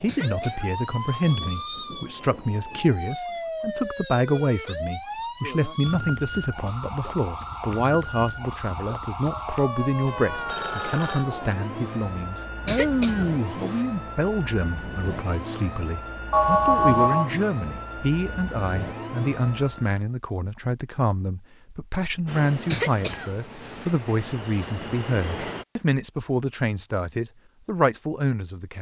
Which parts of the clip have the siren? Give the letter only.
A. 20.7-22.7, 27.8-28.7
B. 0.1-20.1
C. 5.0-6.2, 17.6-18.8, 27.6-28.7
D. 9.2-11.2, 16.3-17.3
B.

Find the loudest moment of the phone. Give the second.
17 s.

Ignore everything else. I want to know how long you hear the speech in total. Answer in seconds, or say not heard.
29 s.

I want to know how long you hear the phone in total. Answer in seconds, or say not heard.
3 s.